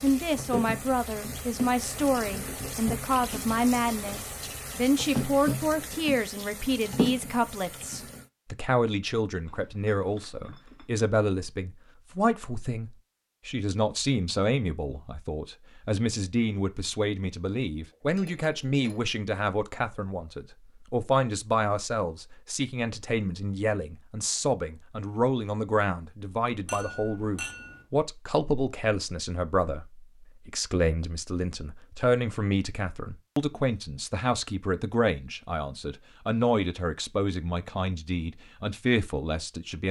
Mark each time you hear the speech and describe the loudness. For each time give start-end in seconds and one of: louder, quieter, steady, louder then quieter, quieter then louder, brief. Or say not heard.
0.0-39.8 steady.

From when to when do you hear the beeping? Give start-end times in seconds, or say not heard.
not heard.